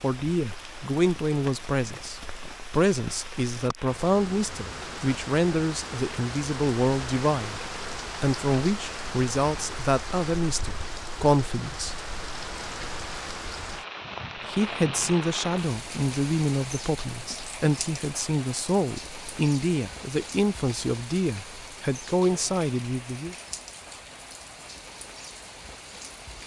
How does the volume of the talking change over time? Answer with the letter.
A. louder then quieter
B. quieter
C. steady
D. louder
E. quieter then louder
C.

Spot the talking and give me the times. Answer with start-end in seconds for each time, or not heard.
0.0-7.6, 8.2-12.1, 14.4-23.4.